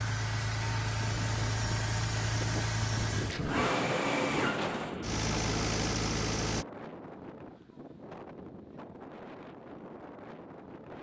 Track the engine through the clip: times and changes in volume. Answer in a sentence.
You can hear the engine from 0.0 to 6.7 s, at a steady volume.